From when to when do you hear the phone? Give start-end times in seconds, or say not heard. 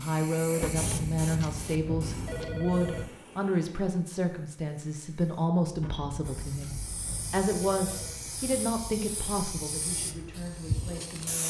0.6-3.0, 5.8-8.2.